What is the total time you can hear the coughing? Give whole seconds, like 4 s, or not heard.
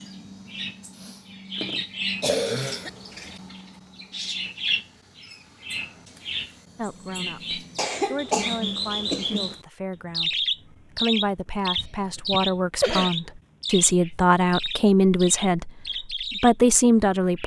5 s.